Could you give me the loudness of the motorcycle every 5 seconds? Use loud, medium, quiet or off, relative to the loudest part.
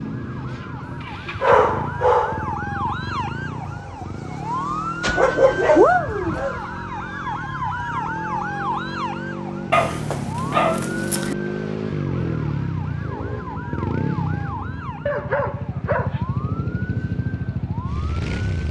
medium, medium, loud, loud.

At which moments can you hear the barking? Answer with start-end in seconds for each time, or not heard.
1.2-2.5, 5.0-6.6, 9.7-11.3, 15.1-16.2.